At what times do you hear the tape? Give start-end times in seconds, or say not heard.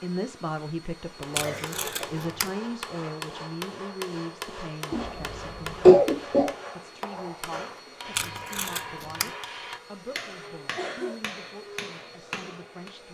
1.4-2.5, 8.2-9.3.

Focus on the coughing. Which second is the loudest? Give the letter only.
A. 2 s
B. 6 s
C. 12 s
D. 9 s
B.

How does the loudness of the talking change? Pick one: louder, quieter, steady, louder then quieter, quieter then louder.
quieter.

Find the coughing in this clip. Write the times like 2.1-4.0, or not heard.
1.4-2.1, 4.9-6.5, 10.8-11.2.